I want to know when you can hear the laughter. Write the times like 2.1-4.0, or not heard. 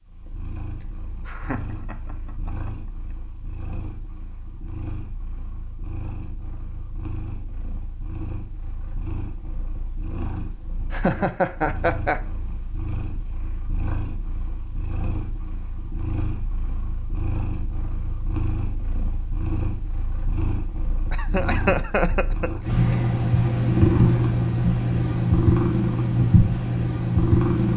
1.2-3.1, 10.9-12.2, 21.1-22.5.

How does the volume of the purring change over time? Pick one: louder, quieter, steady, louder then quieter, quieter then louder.
louder.